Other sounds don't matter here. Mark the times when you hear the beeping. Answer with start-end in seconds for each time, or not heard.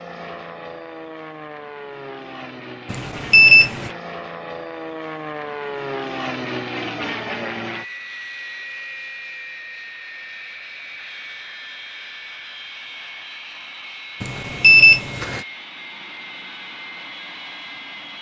2.9-3.9, 14.2-15.4.